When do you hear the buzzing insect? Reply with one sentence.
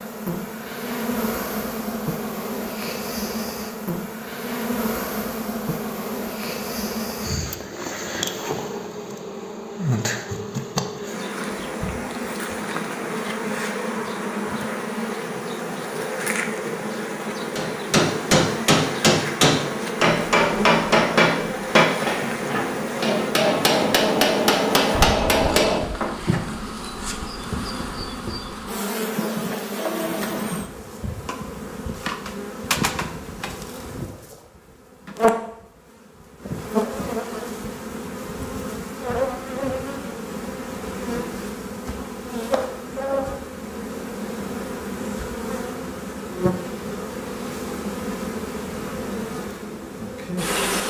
You can hear the buzzing insect from 0.0 to 50.8 s.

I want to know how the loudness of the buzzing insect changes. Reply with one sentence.
The loudness of the buzzing insect stays about the same.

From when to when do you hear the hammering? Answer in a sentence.
You can hear the hammering from 17.6 to 26.4 s.